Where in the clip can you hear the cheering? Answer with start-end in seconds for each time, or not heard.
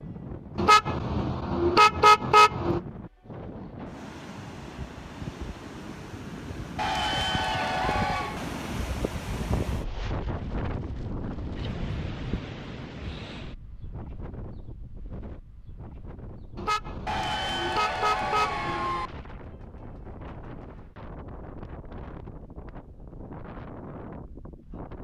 6.8-8.4, 17.1-19.1.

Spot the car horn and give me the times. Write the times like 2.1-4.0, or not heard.
0.6-2.8, 16.6-19.1.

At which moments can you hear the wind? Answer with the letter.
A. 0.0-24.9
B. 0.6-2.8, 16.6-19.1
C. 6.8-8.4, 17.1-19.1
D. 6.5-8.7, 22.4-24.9
A.